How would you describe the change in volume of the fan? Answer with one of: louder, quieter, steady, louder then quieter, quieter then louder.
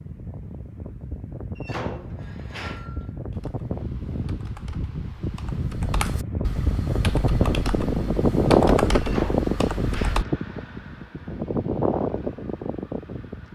louder then quieter.